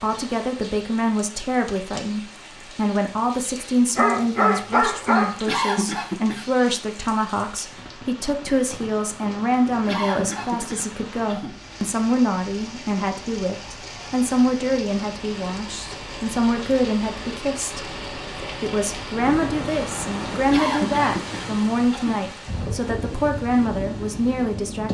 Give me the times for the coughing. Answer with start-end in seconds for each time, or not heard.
5.5-6.5, 9.8-11.6, 20.5-22.2.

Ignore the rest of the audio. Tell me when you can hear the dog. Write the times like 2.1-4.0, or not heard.
4.0-5.4.